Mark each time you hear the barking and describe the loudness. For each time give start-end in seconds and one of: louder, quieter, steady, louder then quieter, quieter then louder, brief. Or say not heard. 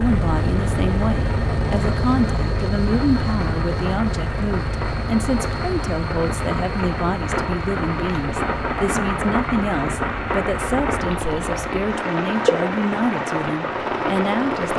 not heard.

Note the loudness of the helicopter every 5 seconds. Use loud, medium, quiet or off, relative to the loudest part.
loud, medium, medium.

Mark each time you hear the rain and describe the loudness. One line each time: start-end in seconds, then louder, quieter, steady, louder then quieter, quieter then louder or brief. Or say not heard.
0.0-14.7 louder.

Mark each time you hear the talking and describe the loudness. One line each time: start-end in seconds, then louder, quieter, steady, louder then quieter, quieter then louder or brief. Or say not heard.
0.0-14.7 steady.